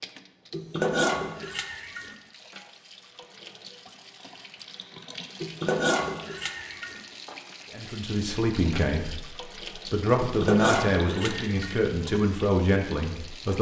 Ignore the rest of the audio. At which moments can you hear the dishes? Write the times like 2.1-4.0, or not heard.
0.5-2.1, 5.4-7.0, 10.2-11.8.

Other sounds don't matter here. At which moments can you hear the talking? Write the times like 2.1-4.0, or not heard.
7.7-13.5.